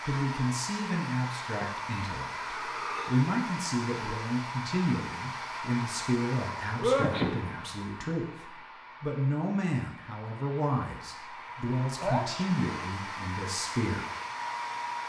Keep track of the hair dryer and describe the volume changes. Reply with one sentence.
The loudness of the hair dryer goes down, then up.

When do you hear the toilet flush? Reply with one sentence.
The toilet flush can't be heard in this clip.